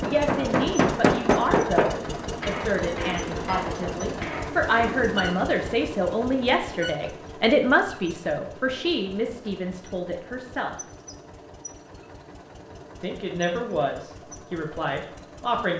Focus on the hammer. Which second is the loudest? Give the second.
1 s.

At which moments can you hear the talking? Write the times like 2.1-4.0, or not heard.
0.0-10.8, 13.0-15.7.